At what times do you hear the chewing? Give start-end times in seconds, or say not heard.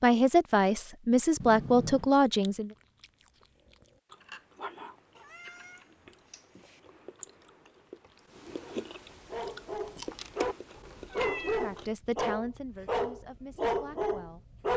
2.4-11.9.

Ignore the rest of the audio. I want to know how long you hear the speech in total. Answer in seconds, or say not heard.
6 s.